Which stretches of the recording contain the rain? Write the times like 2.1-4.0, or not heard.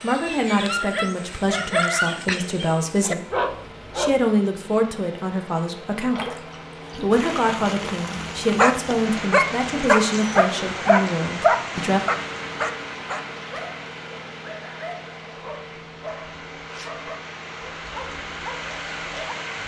6.0-19.6.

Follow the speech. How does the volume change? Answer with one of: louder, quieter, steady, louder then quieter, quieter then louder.
steady.